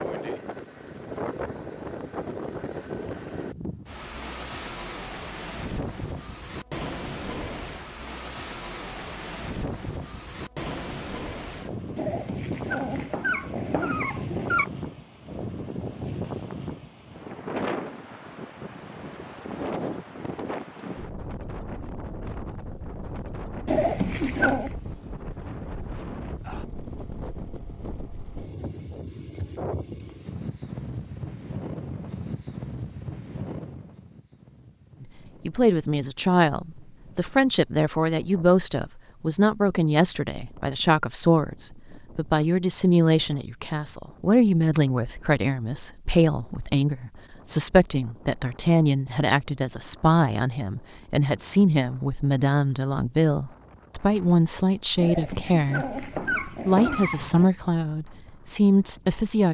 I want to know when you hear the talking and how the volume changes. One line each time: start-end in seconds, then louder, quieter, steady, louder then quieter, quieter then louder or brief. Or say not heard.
35.0-59.4 steady.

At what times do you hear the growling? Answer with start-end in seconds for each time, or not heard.
11.9-14.7, 23.6-24.8, 55.0-57.5.